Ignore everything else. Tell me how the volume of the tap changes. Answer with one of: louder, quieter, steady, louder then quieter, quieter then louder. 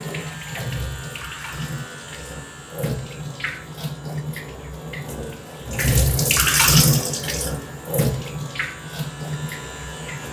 louder then quieter.